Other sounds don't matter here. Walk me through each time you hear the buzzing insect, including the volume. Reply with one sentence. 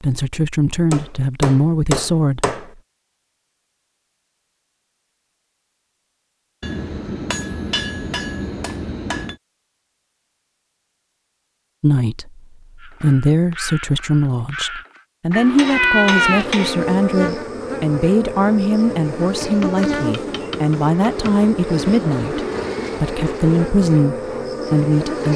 You can hear the buzzing insect from 16.1 to 25.3 s, at a steady volume.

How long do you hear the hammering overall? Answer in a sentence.
The hammering can be heard for 8 seconds in total.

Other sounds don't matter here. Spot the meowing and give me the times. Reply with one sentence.
You can hear the meowing from 15.3 to 16.6 s.